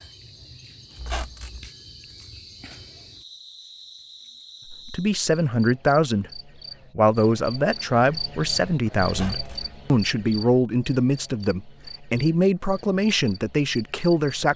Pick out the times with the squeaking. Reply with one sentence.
The squeaking can be heard from 0.9 to 1.7 s and from 9.1 to 9.8 s.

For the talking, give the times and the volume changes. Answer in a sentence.
You can hear the talking from 4.7 to 14.5 s, at a steady volume.